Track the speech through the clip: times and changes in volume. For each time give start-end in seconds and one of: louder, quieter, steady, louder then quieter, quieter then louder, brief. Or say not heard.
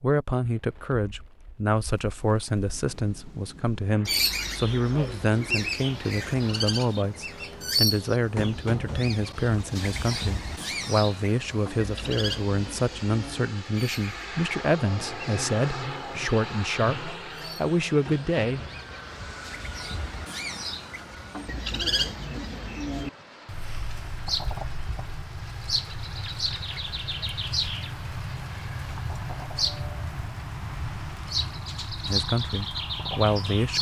0.0-18.6 steady
32.0-33.7 brief.